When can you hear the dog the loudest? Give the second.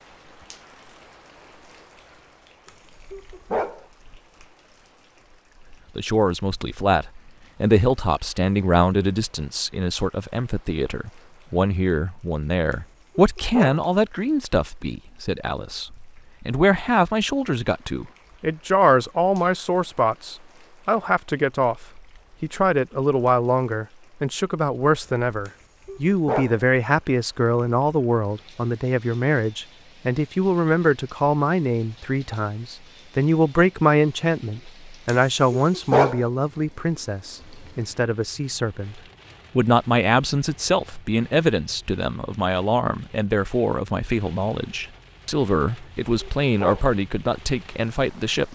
36 s.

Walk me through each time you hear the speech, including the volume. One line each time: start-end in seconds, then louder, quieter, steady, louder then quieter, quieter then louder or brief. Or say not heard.
6.0-48.5 steady.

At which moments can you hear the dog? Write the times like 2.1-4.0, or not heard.
2.6-3.9, 12.7-13.8, 25.4-26.6, 35.0-36.2, 45.8-47.0.